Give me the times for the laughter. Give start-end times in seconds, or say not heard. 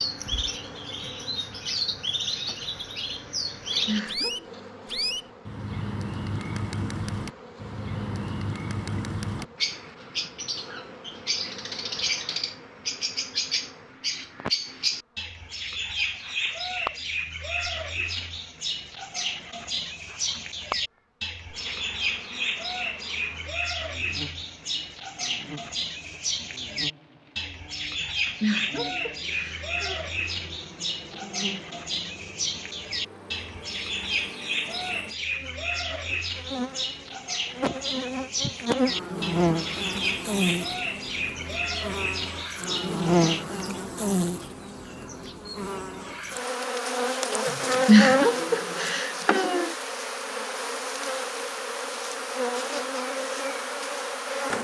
3.5-4.5, 28.0-30.0, 47.5-49.7.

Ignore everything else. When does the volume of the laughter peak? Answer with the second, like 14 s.
48 s.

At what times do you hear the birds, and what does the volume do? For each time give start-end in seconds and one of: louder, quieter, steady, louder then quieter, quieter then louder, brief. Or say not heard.
0.0-43.5 steady.